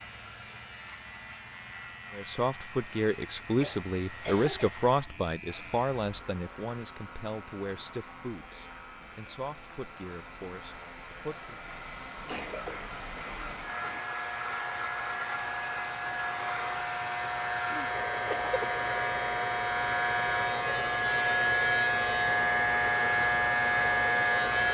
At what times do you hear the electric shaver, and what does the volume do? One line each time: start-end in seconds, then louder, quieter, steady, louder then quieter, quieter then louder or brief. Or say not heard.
0.0-24.6 louder.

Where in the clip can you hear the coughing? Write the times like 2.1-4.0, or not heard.
3.6-4.7, 12.2-14.0, 17.7-18.6.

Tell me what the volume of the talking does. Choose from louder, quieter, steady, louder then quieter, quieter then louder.
quieter.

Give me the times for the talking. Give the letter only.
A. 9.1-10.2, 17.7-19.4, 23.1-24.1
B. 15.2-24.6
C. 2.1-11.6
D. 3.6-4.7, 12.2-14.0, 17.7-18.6
C.